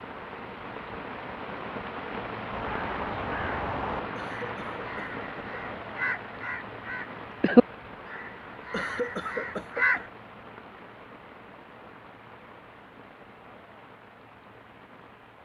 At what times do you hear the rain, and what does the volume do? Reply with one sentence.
The rain can be heard from 0.0 to 15.4 s, getting quieter.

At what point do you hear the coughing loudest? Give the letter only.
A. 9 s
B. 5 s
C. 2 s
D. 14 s
A.